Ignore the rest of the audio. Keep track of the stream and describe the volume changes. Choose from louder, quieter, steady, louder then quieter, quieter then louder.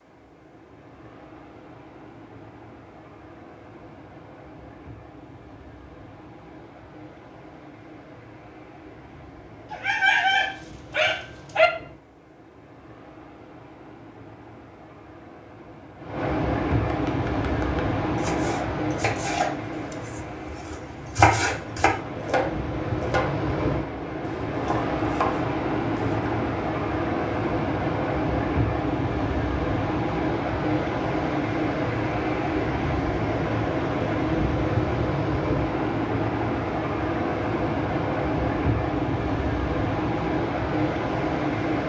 louder.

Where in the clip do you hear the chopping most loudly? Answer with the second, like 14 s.
21 s.